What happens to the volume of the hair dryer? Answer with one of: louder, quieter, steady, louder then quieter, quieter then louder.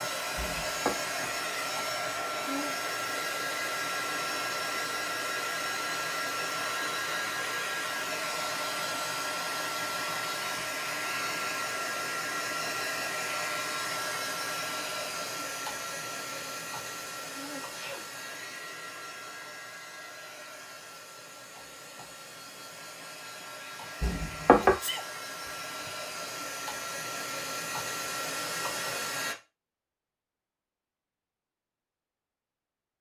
quieter then louder.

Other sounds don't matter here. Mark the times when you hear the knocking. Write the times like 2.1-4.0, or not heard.
0.3-0.9, 24.0-24.8.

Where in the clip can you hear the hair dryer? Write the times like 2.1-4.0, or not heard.
0.0-29.4.